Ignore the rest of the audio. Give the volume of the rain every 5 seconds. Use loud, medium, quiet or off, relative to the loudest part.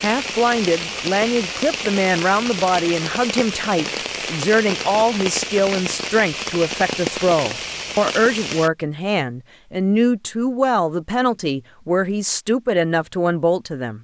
loud, loud, off.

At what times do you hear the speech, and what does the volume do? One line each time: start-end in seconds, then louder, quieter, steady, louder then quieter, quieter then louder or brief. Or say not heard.
0.0-13.9 steady.